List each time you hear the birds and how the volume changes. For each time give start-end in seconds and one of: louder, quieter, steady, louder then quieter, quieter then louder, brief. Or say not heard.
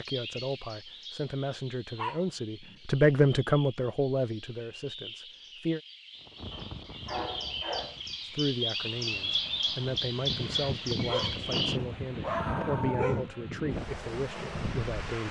0.0-11.8 louder.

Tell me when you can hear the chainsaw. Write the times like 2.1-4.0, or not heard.
not heard.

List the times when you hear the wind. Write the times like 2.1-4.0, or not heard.
6.2-15.2.